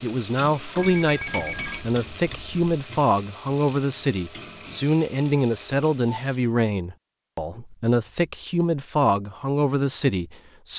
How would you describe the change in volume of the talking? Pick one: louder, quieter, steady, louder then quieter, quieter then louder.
steady.